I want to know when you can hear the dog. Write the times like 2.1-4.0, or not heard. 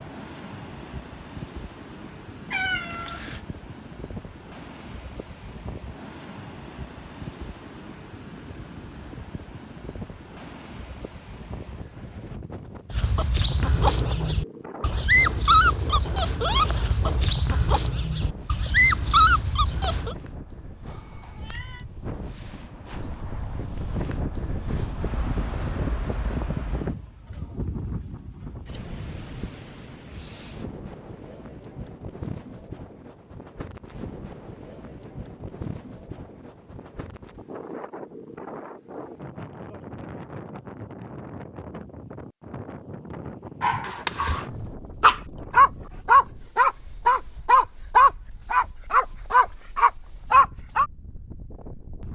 12.9-20.1, 43.6-50.9.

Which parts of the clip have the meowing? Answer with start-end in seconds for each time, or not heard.
2.5-3.5, 20.9-21.9, 43.8-44.5.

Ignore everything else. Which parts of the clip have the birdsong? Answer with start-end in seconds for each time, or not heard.
not heard.